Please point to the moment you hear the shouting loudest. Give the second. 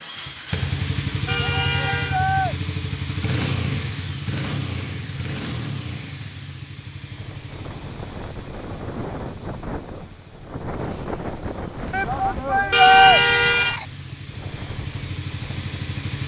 13 s.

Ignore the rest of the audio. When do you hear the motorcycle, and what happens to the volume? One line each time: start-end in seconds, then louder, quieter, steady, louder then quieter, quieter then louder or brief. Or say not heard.
0.0-16.2 quieter then louder.